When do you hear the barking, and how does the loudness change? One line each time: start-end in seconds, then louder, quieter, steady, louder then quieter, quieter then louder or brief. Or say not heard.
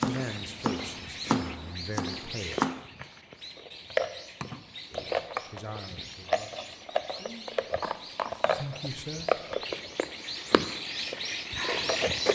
not heard.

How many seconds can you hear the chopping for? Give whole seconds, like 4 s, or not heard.
3 s.